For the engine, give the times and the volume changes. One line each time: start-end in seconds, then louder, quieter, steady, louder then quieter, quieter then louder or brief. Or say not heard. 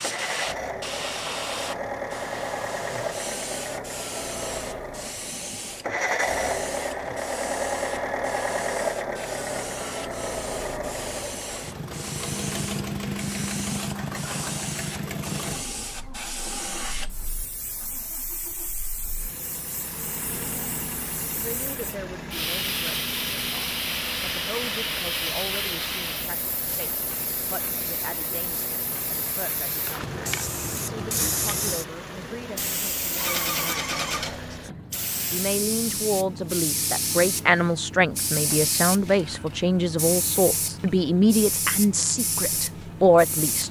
0.0-43.6 quieter.